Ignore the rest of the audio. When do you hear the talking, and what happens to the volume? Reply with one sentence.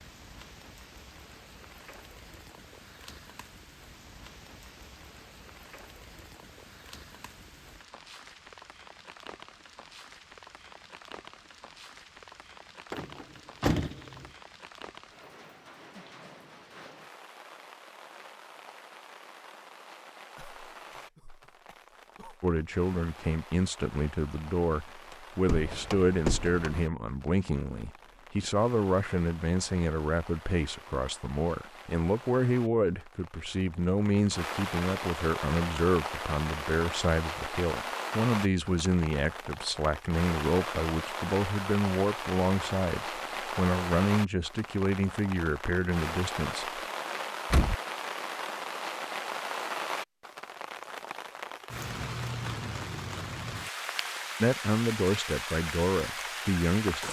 The talking can be heard from 22.4 to 46.8 s, at a steady volume; and briefly from 54.4 to 57.0 s.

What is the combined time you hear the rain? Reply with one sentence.
You can hear the rain for 57 seconds altogether.